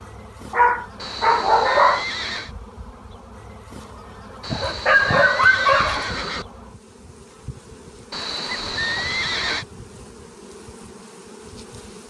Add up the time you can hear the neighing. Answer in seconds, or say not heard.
5 s.